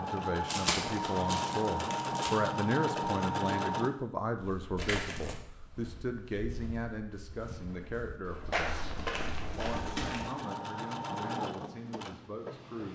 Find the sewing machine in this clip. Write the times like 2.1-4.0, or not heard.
0.0-3.9, 9.6-12.9.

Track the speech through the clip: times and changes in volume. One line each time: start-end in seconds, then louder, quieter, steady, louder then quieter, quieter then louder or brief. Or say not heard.
0.0-12.9 quieter.